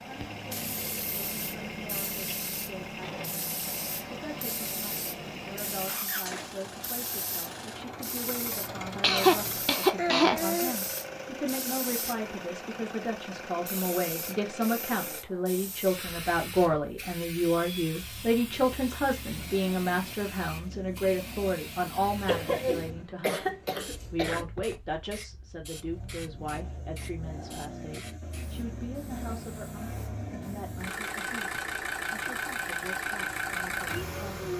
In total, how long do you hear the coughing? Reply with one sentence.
You can hear the coughing for 4 seconds altogether.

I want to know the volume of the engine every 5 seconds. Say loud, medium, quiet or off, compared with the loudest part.
medium, medium, medium, quiet, quiet, medium, loud.